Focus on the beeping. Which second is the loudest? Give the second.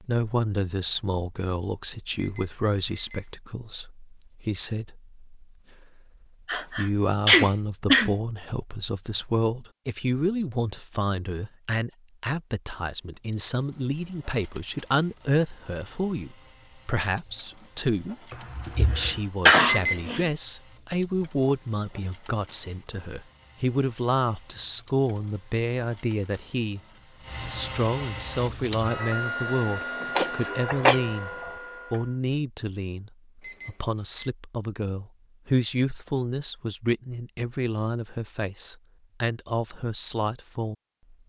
20 s.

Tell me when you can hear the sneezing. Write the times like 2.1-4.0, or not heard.
6.5-8.1, 18.3-20.2, 30.1-31.1.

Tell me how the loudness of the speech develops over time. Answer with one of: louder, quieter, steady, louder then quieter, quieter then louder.
steady.